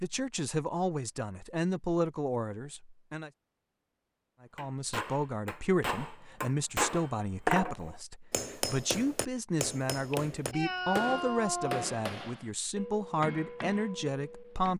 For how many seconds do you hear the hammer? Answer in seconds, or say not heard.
10 s.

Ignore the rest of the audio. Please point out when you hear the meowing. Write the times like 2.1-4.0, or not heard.
9.9-11.8.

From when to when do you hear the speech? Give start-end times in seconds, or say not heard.
0.0-3.3, 4.4-14.7.